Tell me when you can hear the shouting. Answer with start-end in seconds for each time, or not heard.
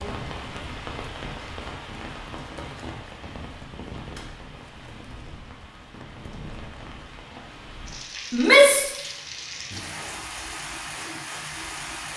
8.3-8.9.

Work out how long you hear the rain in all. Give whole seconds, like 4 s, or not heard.
12 s.